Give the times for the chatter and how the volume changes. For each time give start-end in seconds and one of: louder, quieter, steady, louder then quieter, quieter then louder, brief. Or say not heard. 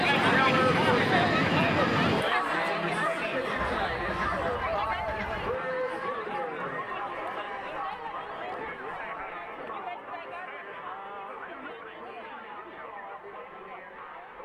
0.0-14.4 quieter.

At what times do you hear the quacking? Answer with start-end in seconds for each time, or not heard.
3.5-5.5.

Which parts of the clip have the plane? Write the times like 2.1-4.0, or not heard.
0.0-2.2.